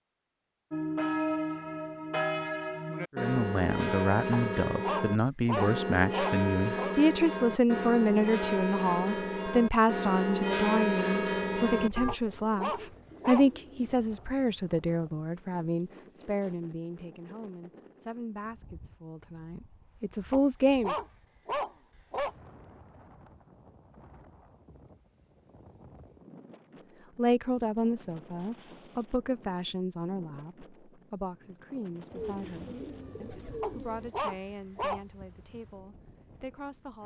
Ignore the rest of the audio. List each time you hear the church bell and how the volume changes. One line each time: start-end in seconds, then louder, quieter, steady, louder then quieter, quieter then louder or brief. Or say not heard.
0.7-12.2 steady.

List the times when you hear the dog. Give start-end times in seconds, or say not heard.
4.3-7.0, 12.1-13.5, 20.3-22.4, 33.6-35.0.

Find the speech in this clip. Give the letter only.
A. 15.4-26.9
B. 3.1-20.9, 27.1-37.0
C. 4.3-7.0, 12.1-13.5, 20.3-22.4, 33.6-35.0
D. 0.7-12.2
B.